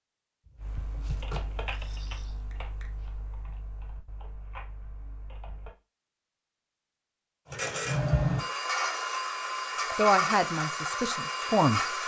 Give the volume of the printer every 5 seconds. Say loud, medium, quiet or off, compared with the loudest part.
off, loud, loud.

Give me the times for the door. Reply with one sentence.
The door can be heard from 0.5 to 1.4 s.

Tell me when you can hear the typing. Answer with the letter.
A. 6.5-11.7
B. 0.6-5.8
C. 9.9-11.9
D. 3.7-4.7
B.